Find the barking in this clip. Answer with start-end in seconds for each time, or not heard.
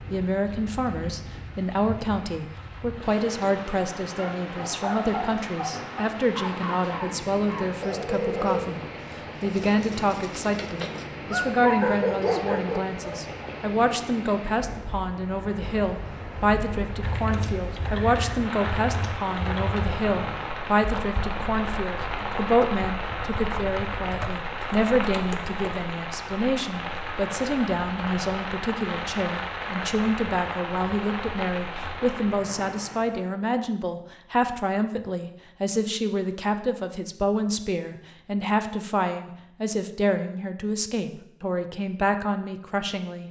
4.2-13.3.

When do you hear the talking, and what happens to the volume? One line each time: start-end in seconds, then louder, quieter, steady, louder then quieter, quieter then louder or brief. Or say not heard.
0.1-43.2 steady.